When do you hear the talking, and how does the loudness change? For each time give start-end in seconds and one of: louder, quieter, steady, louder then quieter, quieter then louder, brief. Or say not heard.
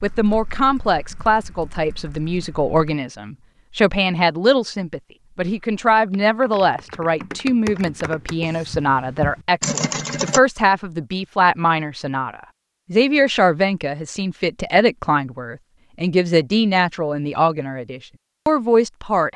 0.0-19.3 steady.